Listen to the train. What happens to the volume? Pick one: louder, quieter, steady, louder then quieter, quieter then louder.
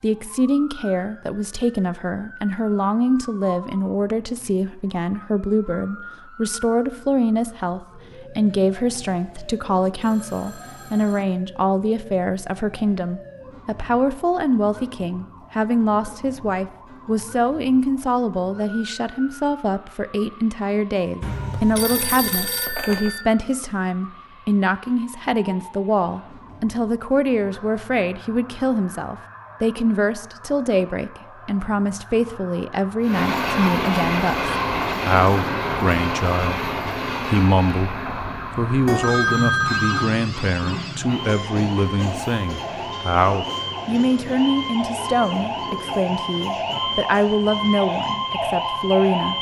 quieter.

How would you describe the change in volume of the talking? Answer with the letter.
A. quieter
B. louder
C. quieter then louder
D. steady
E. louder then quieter
D.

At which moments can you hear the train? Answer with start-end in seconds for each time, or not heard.
33.0-49.3.